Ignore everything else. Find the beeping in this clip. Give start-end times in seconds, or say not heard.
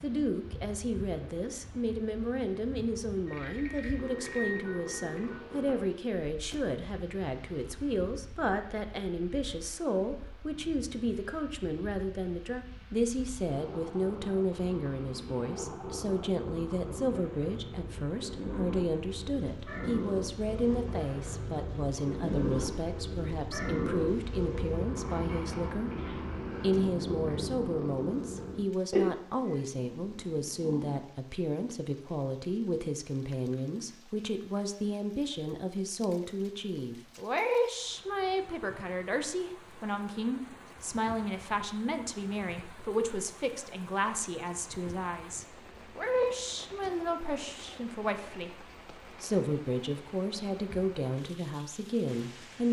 3.2-5.3.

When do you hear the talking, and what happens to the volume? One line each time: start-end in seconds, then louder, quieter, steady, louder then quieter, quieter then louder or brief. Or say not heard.
0.0-52.6 steady.